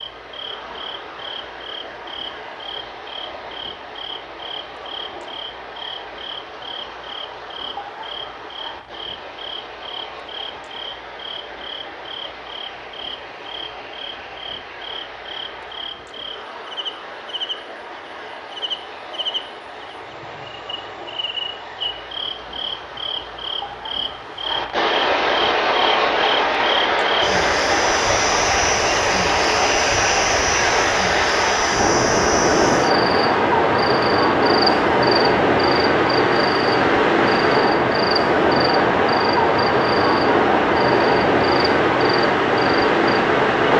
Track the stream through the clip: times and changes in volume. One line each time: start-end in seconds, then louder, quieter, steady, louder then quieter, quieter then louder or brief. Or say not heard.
0.0-43.7 louder.